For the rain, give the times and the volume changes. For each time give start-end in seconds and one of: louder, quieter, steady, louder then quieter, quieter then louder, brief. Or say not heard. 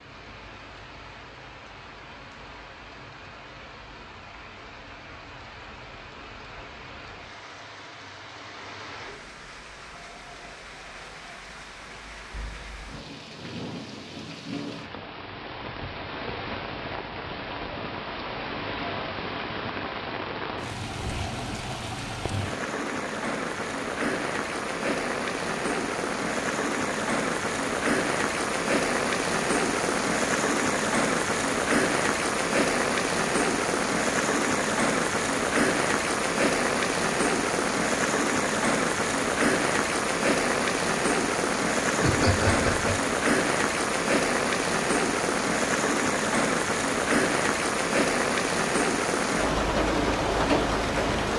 0.0-51.3 louder.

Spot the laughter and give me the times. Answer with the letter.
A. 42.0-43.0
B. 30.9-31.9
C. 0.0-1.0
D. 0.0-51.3
A.